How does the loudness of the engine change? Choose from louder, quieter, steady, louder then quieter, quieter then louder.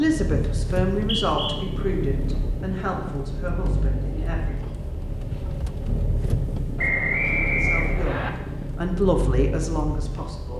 steady.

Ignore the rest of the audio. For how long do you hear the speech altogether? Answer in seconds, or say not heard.
8 s.